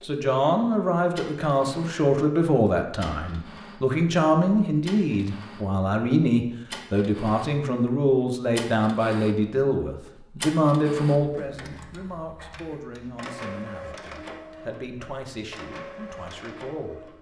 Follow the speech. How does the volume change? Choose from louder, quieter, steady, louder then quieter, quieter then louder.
quieter.